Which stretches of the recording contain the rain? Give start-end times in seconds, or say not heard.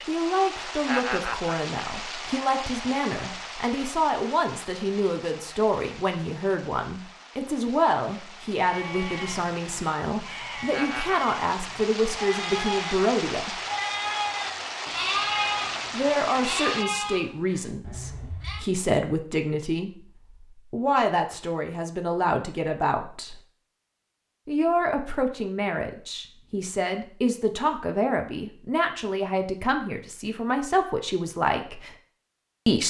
0.0-16.9.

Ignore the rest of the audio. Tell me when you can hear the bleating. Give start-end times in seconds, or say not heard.
8.6-18.6.